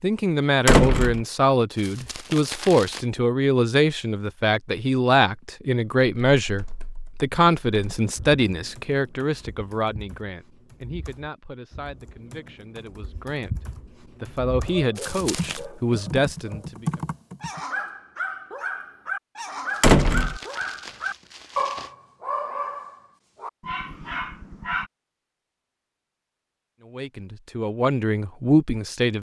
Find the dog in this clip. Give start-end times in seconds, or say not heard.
14.7-24.9.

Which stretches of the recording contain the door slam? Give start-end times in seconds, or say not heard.
0.7-1.2, 19.8-20.4.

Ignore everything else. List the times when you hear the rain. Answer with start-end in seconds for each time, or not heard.
not heard.